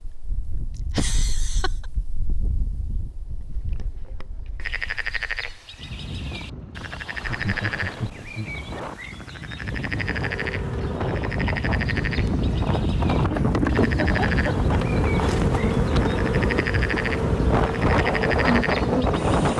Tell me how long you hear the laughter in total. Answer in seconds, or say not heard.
4 s.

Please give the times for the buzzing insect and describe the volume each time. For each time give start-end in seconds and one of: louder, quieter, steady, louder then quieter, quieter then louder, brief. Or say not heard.
9.9-19.5 louder.